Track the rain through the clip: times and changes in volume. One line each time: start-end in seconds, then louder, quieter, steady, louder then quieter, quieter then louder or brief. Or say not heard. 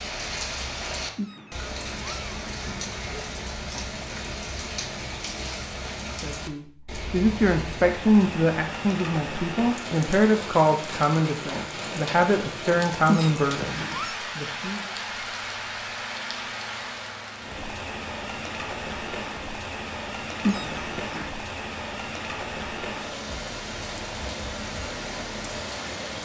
0.0-26.2 steady.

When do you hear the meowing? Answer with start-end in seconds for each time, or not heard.
1.1-2.9, 13.1-14.2, 20.4-21.3.